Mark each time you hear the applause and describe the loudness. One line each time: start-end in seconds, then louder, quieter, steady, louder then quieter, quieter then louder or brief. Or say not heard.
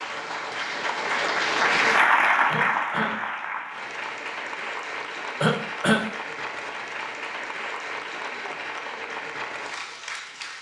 0.0-10.5 quieter.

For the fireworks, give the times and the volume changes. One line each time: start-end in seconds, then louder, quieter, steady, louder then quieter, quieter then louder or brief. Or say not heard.
not heard.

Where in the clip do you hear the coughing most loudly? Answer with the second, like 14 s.
6 s.